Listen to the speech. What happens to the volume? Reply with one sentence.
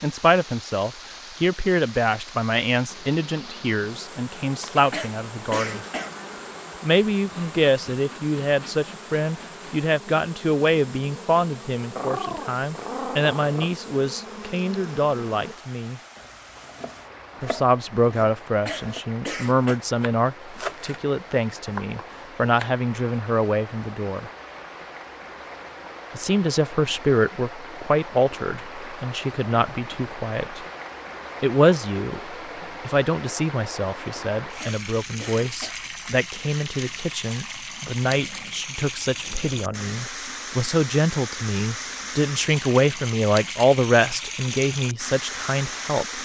The loudness of the speech stays about the same.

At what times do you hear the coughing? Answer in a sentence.
The coughing can be heard from 4.9 to 6.2 s, from 18.6 to 19.8 s and from 34.6 to 35.8 s.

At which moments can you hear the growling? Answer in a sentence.
The growling can be heard from 11.9 to 13.7 s and from 38.0 to 40.1 s.